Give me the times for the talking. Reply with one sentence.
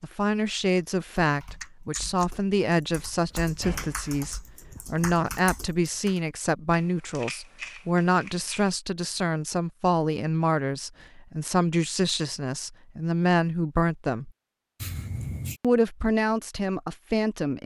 The talking can be heard from 0.0 to 14.3 s and from 15.6 to 17.6 s.